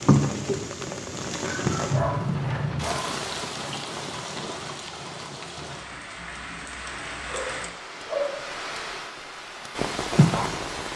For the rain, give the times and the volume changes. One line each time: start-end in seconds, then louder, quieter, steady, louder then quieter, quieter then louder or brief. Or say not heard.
0.0-10.9 quieter then louder.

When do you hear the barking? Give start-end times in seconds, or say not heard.
1.4-3.1, 7.2-8.5.